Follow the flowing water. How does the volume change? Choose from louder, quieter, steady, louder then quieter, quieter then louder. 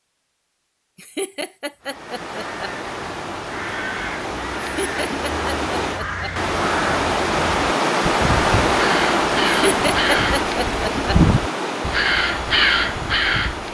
louder then quieter.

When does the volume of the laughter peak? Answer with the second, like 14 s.
10 s.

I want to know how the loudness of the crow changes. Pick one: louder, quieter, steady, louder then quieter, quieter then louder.
louder.